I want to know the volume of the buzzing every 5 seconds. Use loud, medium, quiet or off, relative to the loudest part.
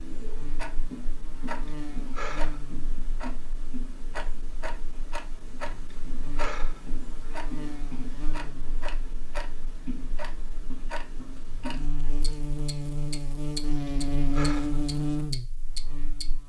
quiet, quiet, loud, loud.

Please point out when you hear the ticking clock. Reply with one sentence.
You can hear the ticking clock from 0.0 to 16.2 s.